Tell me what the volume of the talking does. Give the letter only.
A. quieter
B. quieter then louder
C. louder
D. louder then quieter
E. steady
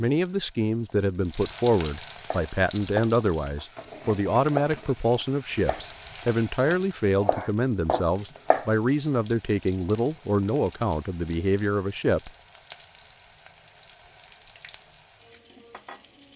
E.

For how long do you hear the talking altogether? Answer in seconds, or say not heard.
12 s.